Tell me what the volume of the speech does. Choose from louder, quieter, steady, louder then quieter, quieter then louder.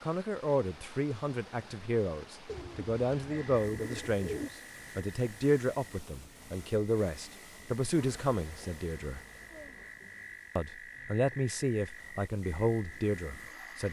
steady.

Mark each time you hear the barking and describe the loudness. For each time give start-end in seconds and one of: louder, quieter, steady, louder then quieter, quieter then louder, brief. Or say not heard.
not heard.